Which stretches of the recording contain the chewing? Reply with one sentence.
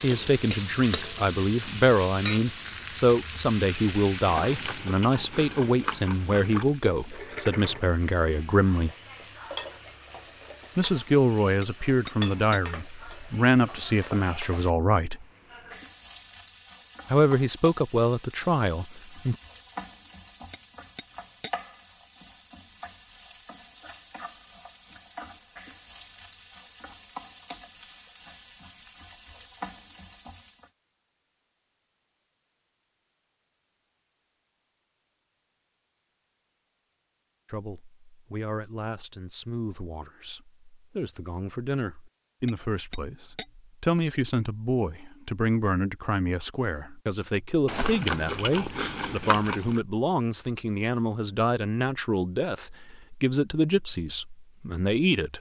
You can hear the chewing from 4.2 to 6.8 s and from 47.6 to 49.8 s.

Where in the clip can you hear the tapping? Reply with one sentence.
You can hear the tapping from 11.6 to 12.6 s, from 20.5 to 21.5 s and from 42.5 to 43.5 s.